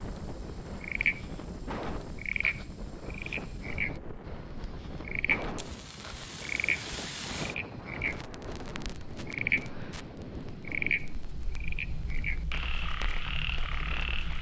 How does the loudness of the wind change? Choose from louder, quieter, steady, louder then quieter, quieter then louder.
quieter.